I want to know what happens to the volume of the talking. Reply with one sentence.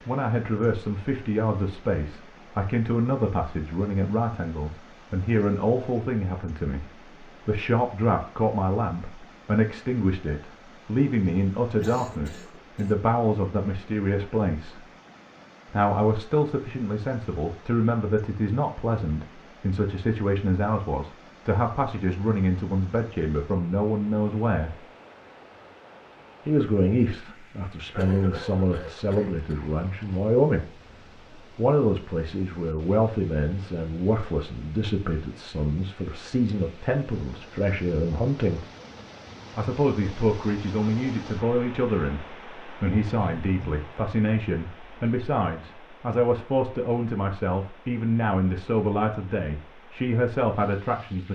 The volume of the talking stays about the same.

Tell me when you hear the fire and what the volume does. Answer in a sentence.
The fire can't be heard in this clip.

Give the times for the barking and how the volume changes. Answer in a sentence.
You can't hear the barking here.